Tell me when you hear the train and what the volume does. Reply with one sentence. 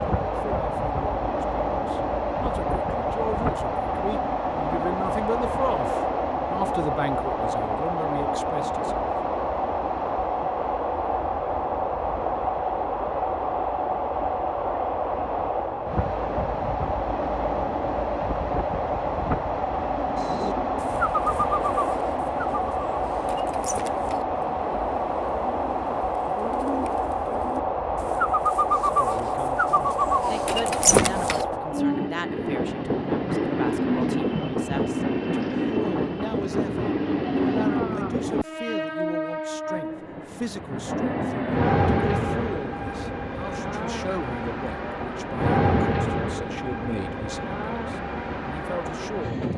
The train can be heard from 0.0 to 49.5 s, at a steady volume.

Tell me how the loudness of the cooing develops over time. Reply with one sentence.
The volume of the cooing goes down, then up.